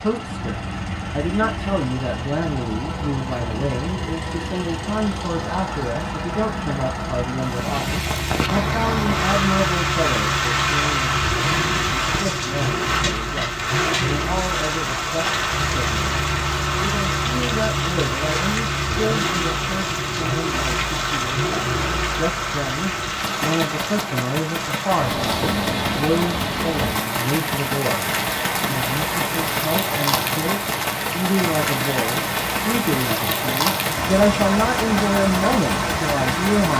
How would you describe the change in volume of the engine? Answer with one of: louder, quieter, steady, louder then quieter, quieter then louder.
steady.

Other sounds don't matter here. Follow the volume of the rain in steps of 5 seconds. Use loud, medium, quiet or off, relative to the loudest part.
off, loud, loud, loud, loud, loud, loud, loud.